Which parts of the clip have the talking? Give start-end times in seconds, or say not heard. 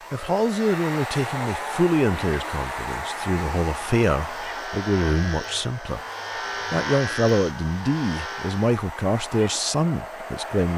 0.1-6.0, 6.7-10.7.